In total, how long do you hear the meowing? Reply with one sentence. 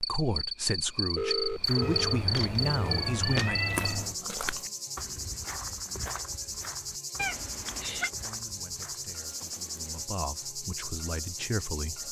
You can hear the meowing for 3 seconds altogether.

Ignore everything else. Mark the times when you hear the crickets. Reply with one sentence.
The crickets can be heard from 0.0 to 12.0 s.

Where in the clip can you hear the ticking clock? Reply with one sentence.
The ticking clock can't be heard in this clip.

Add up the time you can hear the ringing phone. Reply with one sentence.
The ringing phone can be heard for 2 seconds in total.